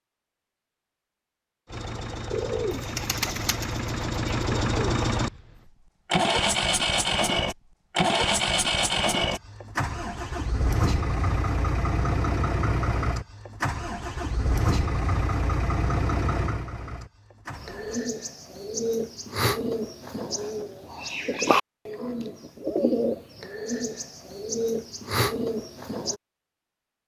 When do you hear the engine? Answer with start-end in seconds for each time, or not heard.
1.6-18.1.